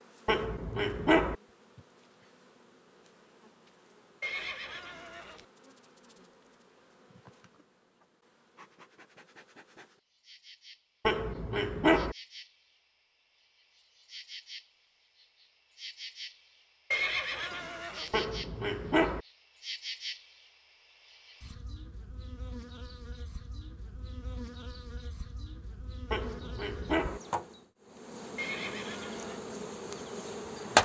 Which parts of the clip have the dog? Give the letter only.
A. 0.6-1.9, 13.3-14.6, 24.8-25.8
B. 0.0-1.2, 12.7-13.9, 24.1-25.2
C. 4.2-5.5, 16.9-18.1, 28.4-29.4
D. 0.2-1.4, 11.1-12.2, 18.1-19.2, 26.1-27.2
D.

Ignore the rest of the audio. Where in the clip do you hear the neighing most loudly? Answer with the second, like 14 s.
17 s.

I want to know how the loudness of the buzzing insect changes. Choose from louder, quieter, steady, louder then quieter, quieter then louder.
louder.